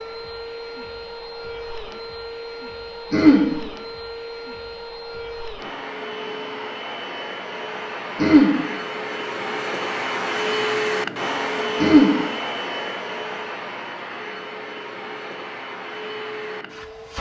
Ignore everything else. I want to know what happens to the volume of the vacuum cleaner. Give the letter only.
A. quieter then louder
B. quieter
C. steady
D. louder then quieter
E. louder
D.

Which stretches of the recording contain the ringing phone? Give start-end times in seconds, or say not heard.
not heard.